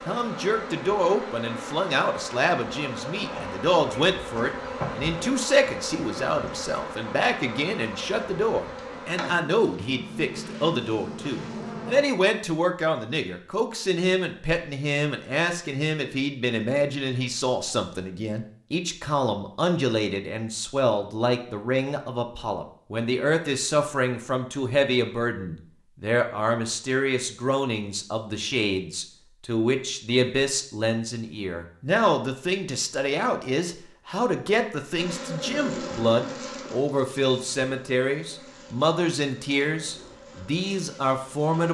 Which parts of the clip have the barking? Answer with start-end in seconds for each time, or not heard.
not heard.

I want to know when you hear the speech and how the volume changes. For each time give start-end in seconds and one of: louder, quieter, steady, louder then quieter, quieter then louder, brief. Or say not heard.
0.1-41.7 steady.